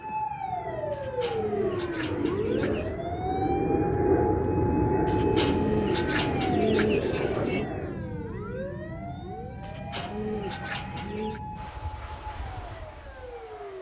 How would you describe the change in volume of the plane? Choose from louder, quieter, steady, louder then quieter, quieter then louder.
louder then quieter.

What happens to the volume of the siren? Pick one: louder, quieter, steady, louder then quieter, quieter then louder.
quieter.